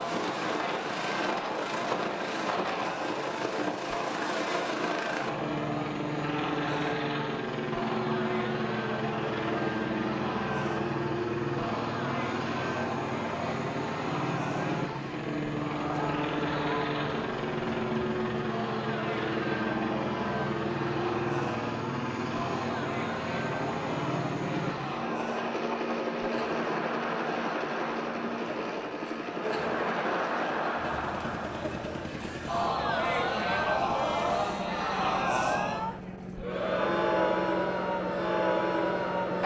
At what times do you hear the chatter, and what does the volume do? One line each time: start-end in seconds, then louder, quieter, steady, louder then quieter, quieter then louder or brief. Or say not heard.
0.0-39.4 louder.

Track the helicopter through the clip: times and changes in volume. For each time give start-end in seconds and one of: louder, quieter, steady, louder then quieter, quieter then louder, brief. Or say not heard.
0.0-39.4 quieter.